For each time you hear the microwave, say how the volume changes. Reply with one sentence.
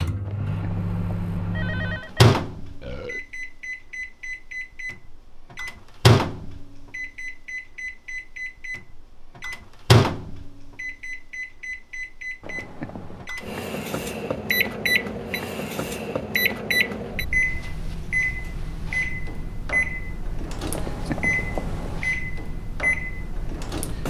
You can hear the microwave from 0.0 to 24.0 s, at a steady volume.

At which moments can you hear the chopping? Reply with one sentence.
The chopping can't be heard in this clip.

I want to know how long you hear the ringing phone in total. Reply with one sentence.
The ringing phone can be heard for 4 seconds in total.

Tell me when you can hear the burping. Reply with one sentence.
The burping can be heard from 2.8 to 3.2 s.